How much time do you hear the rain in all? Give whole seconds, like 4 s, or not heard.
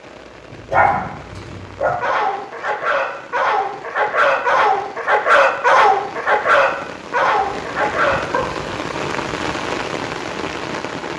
11 s.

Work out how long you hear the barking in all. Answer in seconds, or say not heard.
8 s.